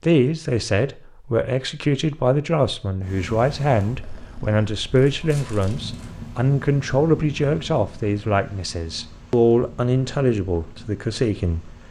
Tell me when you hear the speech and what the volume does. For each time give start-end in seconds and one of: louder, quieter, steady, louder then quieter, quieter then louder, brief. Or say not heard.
0.0-11.8 steady.